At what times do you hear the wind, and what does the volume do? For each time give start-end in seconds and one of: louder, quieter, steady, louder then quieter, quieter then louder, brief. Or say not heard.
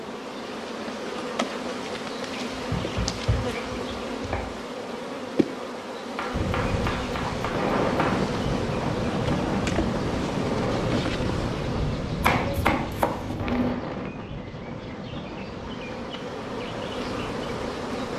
6.3-18.1 quieter.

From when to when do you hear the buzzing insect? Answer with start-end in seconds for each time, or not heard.
0.0-18.1.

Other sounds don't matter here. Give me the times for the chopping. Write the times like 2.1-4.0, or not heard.
2.5-4.5, 6.2-8.2, 12.2-13.8.